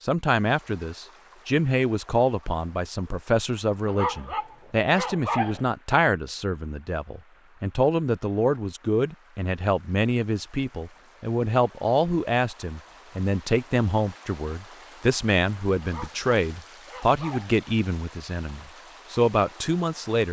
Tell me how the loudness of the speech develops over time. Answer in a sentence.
The volume of the speech stays about the same.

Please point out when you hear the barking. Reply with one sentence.
You can hear the barking from 3.9 to 5.7 s and from 15.8 to 17.6 s.